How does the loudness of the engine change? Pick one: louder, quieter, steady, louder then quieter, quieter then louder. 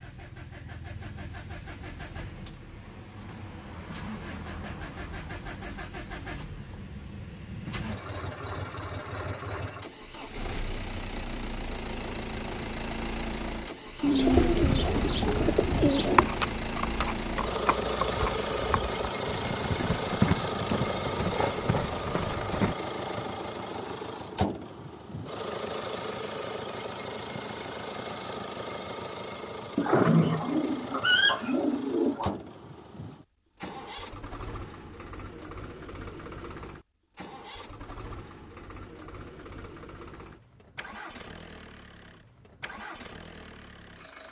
louder then quieter.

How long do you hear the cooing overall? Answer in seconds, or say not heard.
5 s.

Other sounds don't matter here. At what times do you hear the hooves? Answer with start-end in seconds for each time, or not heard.
14.3-22.8.